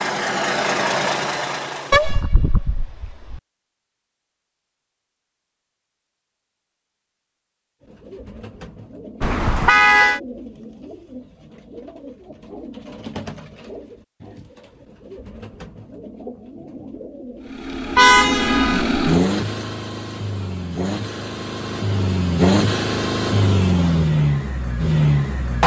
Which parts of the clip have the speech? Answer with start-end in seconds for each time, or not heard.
not heard.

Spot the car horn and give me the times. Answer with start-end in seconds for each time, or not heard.
1.9-3.4, 9.2-10.2, 17.9-18.9.